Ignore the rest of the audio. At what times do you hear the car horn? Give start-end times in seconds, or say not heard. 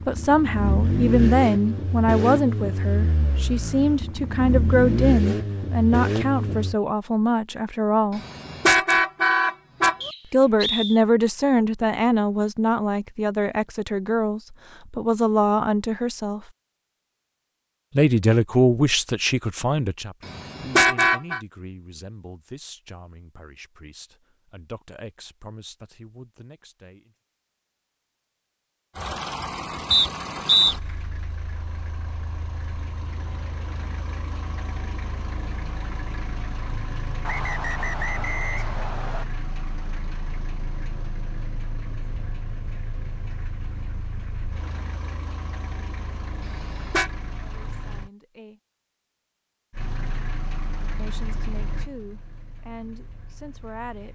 8.2-10.1, 20.2-21.4, 46.5-47.1.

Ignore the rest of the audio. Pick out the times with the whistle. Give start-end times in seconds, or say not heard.
10.0-11.0, 29.9-30.8, 37.2-39.2.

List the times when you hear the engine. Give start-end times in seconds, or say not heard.
0.0-6.8, 28.9-48.1, 49.7-54.1.